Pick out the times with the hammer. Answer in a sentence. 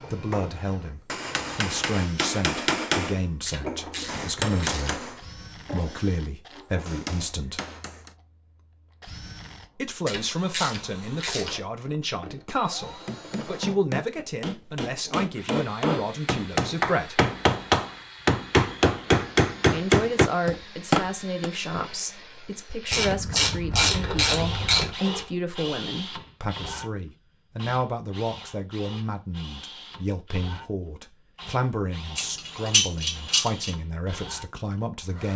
The hammer can be heard from 0.0 to 8.2 s and from 12.8 to 21.5 s.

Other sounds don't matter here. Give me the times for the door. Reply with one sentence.
You can't hear the door here.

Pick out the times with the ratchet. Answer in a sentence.
The ratchet can be heard from 3.5 to 5.0 s, from 10.1 to 11.6 s, from 22.9 to 24.9 s and from 32.1 to 33.7 s.